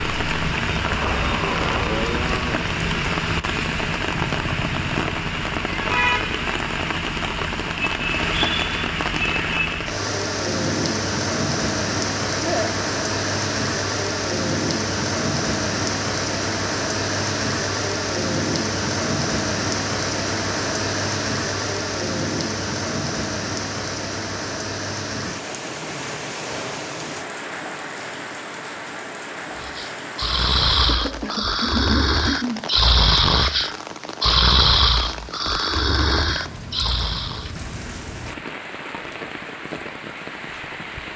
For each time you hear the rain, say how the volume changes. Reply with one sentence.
The rain can be heard from 0.0 to 41.1 s, getting quieter.